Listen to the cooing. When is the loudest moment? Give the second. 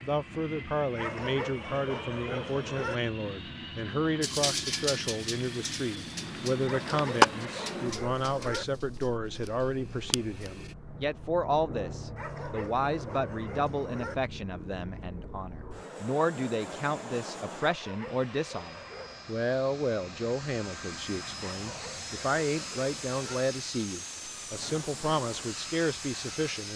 7 s.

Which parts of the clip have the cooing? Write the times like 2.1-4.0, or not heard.
4.2-10.8.